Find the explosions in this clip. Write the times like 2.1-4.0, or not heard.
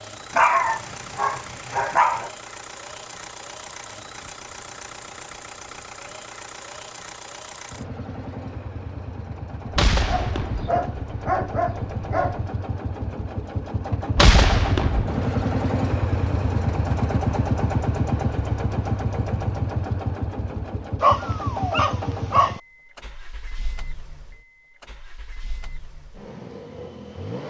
9.8-10.8, 14.2-15.3.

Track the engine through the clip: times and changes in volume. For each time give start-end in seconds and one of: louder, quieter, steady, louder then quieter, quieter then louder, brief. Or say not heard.
0.0-27.4 louder then quieter.